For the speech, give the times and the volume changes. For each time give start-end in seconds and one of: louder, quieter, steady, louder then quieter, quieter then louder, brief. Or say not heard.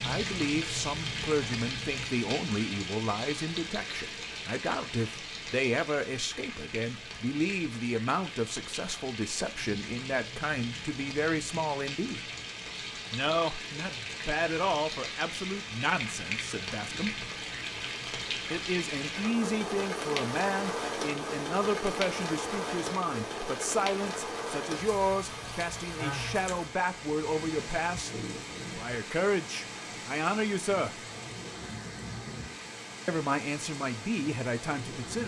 0.0-12.3 steady
13.1-17.1 louder then quieter
18.5-30.9 steady
33.0-35.2 brief.